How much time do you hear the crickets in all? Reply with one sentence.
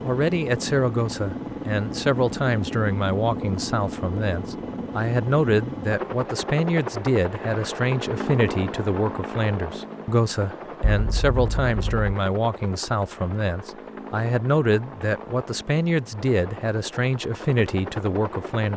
The crickets can't be heard in this clip.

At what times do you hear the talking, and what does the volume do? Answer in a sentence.
The talking can be heard from 0.0 to 18.7 s, at a steady volume.